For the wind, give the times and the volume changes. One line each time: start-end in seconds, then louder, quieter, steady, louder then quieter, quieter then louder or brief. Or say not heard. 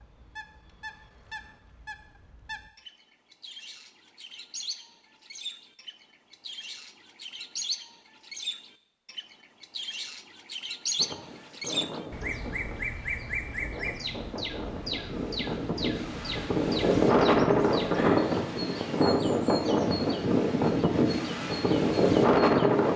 10.9-22.9 louder.